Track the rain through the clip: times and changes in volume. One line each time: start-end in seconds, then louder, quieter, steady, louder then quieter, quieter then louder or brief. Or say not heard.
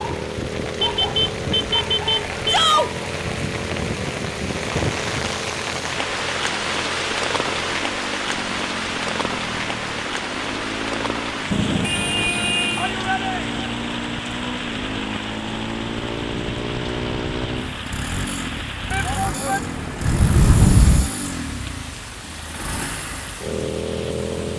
0.0-24.5 quieter.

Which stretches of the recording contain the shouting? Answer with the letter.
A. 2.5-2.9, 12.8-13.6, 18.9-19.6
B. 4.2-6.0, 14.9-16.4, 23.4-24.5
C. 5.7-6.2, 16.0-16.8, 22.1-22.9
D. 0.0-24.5
A.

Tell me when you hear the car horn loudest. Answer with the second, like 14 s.
21 s.